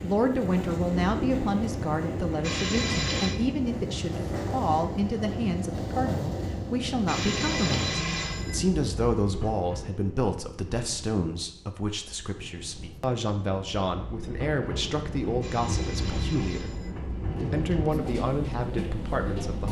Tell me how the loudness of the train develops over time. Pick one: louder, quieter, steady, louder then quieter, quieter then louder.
quieter then louder.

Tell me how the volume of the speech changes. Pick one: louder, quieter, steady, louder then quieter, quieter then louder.
steady.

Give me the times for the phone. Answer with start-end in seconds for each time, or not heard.
2.4-3.4, 7.0-8.6, 15.4-16.9.